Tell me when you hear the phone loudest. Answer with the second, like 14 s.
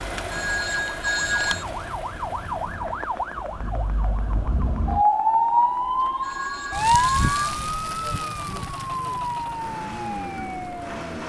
1 s.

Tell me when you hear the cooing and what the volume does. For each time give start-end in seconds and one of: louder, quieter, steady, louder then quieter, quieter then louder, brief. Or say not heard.
not heard.